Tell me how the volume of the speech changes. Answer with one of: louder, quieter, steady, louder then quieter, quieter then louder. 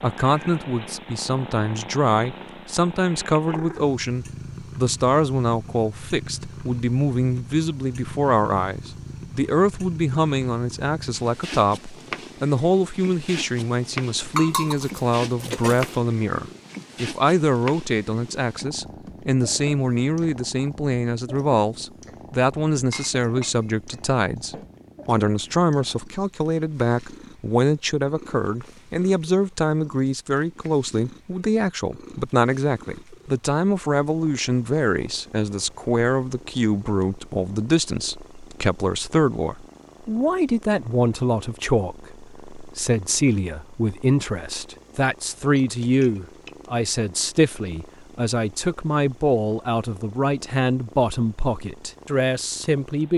steady.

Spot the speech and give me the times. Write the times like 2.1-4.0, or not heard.
0.0-53.1.